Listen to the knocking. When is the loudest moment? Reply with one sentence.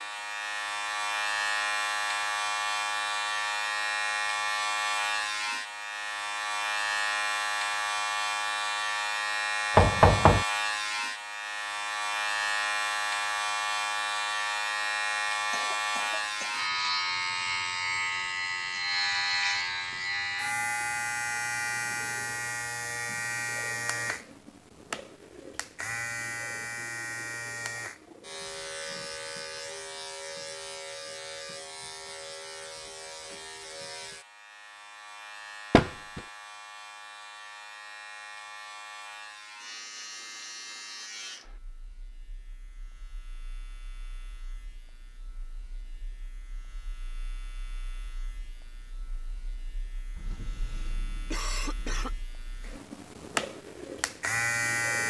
The loudest moment of the knocking is at 10 seconds.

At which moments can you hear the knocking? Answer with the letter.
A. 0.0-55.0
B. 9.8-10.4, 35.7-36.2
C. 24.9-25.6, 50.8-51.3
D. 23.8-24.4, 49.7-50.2
B.